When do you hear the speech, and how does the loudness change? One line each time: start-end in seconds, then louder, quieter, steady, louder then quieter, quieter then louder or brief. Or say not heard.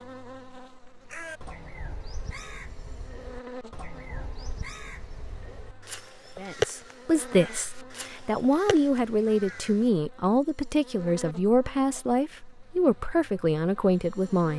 6.3-14.5 steady.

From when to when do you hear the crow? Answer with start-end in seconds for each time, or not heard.
1.1-9.9.